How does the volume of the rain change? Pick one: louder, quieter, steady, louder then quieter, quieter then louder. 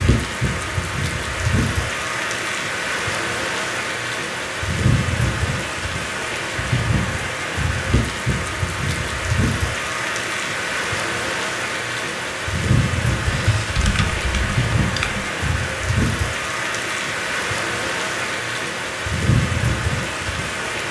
steady.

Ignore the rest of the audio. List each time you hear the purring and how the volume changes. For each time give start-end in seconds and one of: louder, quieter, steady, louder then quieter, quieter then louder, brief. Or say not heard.
not heard.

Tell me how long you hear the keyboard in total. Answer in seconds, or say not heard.
2 s.